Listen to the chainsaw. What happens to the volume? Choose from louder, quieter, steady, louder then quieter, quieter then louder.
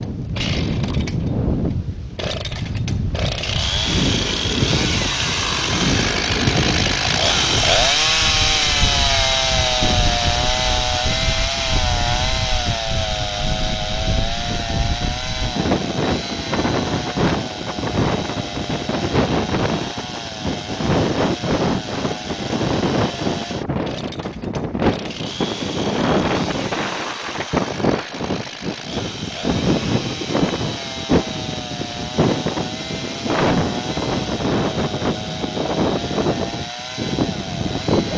quieter.